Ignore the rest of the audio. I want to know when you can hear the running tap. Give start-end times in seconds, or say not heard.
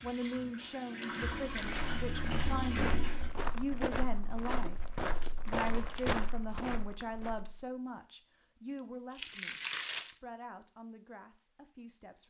0.0-3.4.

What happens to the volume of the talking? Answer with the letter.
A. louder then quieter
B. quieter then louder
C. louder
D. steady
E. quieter
E.